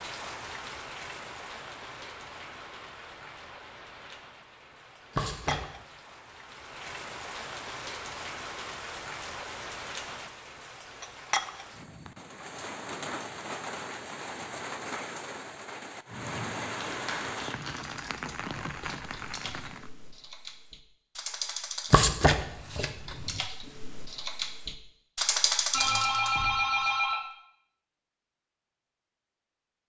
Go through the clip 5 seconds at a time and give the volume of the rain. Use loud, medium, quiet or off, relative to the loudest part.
medium, loud, loud, loud, off, off.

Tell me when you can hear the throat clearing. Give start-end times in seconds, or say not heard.
not heard.